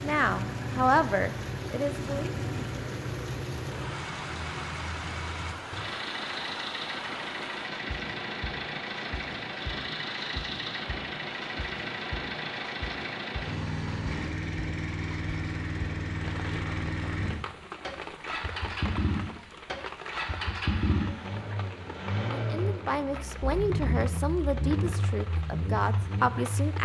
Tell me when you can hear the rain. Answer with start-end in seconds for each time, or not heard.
0.0-26.8.